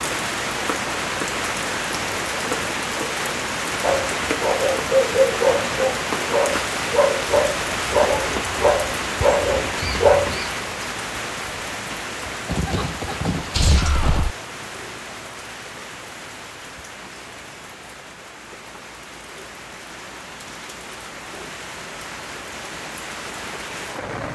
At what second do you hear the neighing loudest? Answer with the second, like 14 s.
14 s.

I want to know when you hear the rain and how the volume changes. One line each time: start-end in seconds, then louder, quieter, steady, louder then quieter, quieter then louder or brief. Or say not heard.
0.0-24.3 quieter.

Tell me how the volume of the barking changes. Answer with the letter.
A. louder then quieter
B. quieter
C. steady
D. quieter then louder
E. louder
C.